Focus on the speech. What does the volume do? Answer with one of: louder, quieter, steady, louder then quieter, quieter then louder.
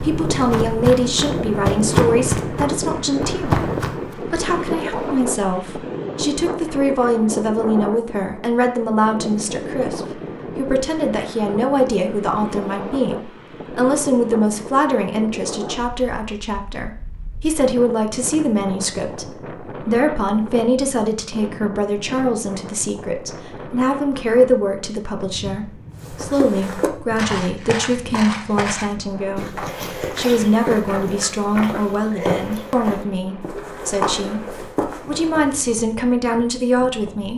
steady.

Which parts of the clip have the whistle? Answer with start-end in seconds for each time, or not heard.
not heard.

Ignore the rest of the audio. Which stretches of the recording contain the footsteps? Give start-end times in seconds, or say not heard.
0.0-4.2, 26.0-35.6.